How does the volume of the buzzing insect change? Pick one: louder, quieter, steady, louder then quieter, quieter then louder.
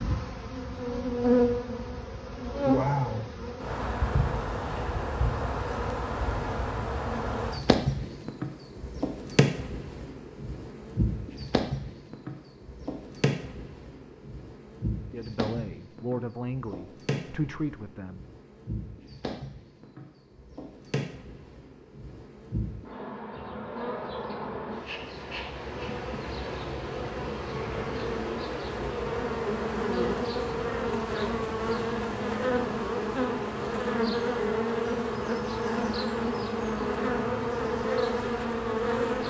quieter then louder.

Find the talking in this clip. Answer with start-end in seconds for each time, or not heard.
15.1-18.2.